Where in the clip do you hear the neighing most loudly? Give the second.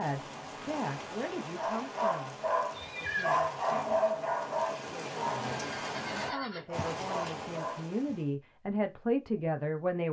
3 s.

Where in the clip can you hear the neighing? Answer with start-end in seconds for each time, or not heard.
2.7-3.4, 5.5-6.8.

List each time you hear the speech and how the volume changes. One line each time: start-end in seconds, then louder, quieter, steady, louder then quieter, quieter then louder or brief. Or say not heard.
0.0-2.4 brief
3.0-10.0 louder.